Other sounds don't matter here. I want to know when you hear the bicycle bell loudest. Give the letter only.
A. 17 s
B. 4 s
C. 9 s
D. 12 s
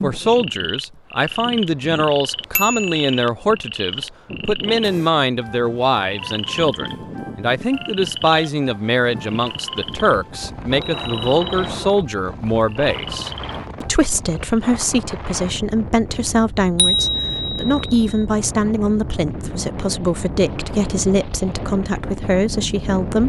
A.